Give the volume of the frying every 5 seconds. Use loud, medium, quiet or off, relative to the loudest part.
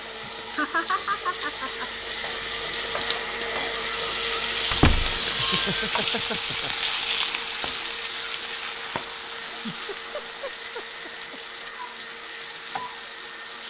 loud, loud, medium.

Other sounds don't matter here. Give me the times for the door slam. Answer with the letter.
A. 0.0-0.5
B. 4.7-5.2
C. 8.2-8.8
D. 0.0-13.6
B.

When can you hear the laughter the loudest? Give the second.
1 s.